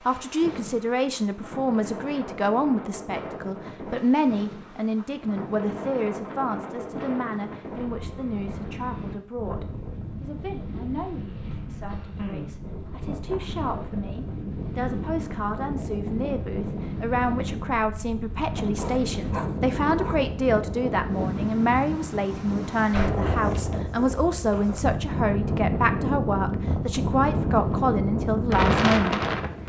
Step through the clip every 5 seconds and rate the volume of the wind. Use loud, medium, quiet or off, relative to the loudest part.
quiet, medium, medium, medium, medium, loud.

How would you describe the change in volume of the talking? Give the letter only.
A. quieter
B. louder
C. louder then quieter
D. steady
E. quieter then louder
E.